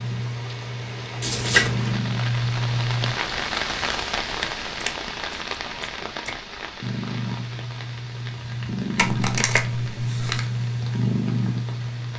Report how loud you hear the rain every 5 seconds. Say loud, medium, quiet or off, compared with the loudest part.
loud, medium, quiet.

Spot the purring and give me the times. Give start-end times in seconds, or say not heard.
0.0-3.1, 6.8-12.1.